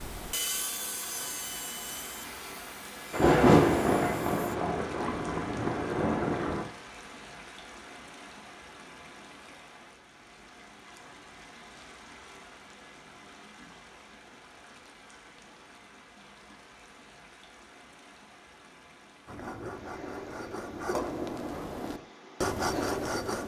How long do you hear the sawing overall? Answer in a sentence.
You can hear the sawing for 9 seconds altogether.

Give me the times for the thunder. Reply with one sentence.
The thunder can be heard from 3.1 to 6.7 s.